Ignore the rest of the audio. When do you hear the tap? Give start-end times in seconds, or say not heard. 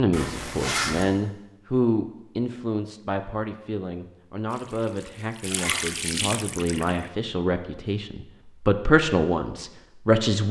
4.5-7.1.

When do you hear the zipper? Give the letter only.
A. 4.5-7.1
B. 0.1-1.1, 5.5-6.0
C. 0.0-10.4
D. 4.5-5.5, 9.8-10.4
B.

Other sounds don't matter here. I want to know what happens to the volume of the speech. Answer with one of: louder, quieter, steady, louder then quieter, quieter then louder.
quieter then louder.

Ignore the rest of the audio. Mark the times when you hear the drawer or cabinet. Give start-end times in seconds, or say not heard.
not heard.